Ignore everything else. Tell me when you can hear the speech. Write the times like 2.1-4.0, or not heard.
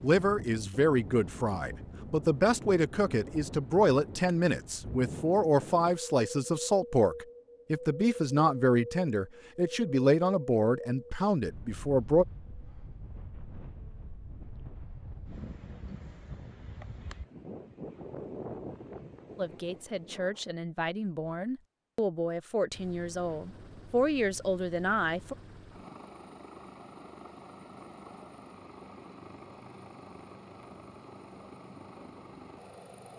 0.0-12.2, 19.4-25.4.